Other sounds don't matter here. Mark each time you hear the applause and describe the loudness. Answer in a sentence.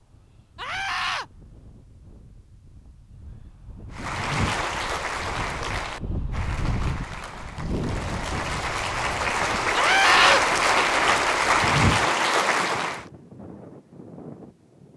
You can hear the applause from 3.9 to 13.1 s, getting quieter then louder.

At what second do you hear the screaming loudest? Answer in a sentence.
The volume of the screaming peaks at 10 seconds.